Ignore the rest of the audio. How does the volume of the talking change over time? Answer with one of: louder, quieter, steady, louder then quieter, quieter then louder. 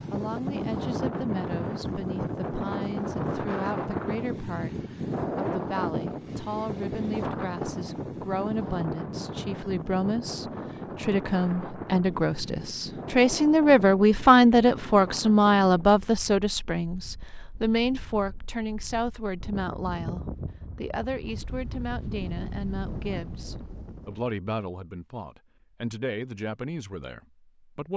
louder then quieter.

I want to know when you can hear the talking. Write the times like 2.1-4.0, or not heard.
0.1-27.9.